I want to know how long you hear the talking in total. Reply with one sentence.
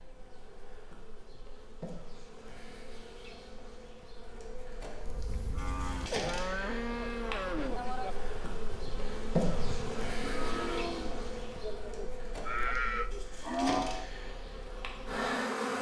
You can't hear the talking here.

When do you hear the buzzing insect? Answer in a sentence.
You can hear the buzzing insect from 0.0 to 15.7 s.